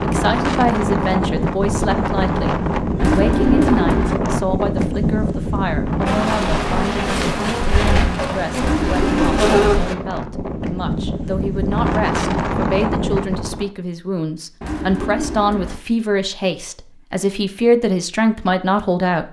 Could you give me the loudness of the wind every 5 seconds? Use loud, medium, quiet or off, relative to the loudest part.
loud, loud, loud, off.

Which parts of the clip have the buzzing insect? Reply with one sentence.
You can hear the buzzing insect from 6.0 to 9.9 s.